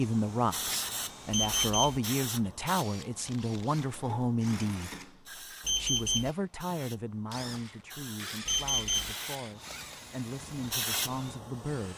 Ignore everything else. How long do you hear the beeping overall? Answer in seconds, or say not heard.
2 s.